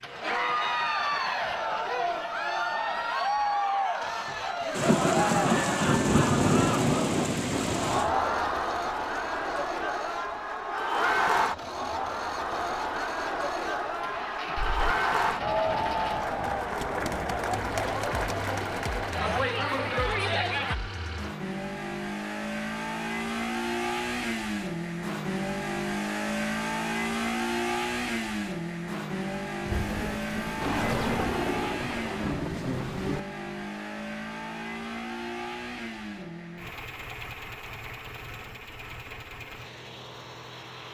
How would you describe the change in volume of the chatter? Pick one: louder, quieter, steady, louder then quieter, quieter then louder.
steady.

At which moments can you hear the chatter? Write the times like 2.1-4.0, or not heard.
0.1-20.8.